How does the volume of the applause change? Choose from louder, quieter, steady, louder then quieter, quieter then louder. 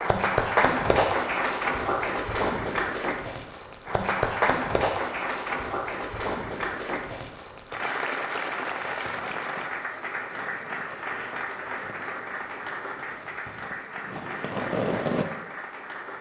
quieter.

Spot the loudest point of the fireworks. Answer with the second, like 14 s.
15 s.